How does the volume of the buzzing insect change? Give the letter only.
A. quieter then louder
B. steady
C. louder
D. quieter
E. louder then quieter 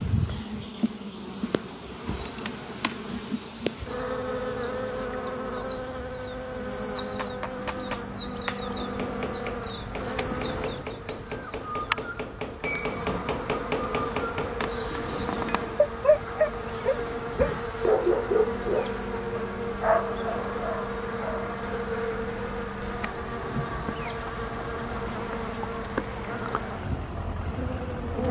B.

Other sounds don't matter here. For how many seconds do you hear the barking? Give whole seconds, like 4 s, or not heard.
6 s.